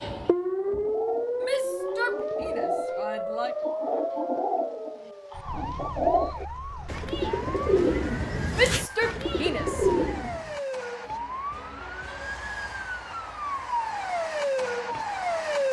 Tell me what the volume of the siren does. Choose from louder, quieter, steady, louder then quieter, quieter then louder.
quieter then louder.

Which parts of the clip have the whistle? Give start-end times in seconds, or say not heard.
not heard.